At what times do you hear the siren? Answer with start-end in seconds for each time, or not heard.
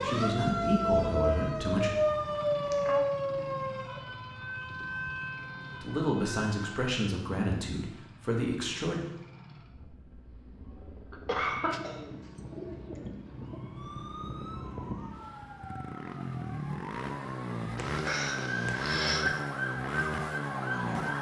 0.0-6.8, 13.3-21.1.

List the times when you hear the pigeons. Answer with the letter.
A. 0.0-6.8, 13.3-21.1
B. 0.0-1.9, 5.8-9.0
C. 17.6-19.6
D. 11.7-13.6
D.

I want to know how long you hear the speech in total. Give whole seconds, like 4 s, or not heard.
5 s.